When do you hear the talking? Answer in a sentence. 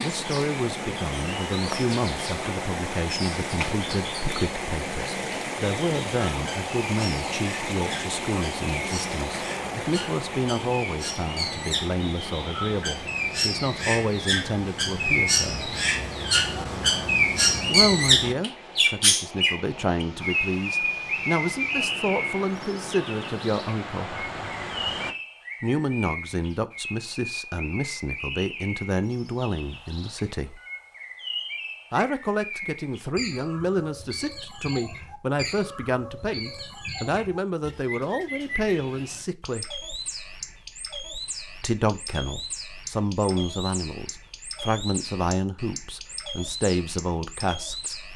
The talking can be heard from 0.0 to 15.7 s, from 17.7 to 24.2 s, from 25.6 to 30.6 s, from 31.9 to 39.7 s and from 41.6 to 48.1 s.